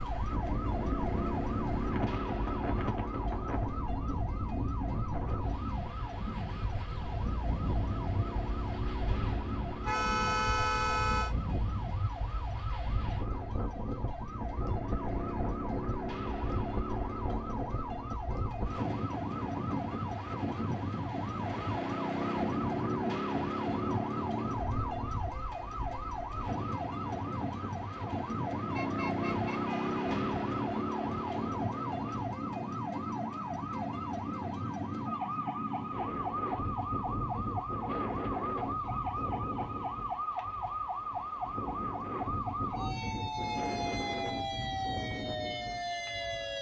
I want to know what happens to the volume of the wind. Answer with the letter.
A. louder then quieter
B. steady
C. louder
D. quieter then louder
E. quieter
B.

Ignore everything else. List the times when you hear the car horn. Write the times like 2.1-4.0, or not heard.
9.8-11.3, 28.7-30.1.